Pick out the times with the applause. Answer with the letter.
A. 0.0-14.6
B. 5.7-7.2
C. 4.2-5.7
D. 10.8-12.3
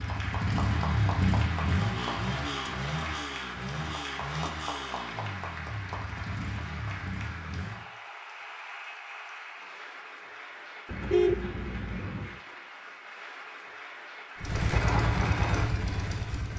A.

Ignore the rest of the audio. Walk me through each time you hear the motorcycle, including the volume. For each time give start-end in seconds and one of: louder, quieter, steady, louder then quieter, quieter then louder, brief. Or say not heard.
0.0-7.8 quieter
14.3-16.5 brief.